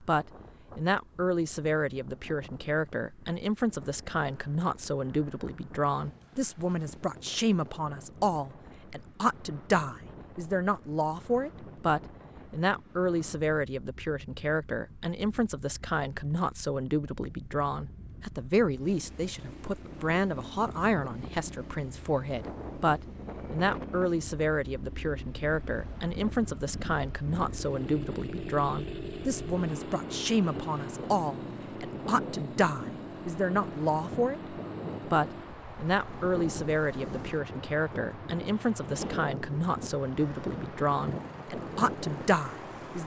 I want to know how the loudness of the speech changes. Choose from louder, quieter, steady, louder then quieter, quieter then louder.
steady.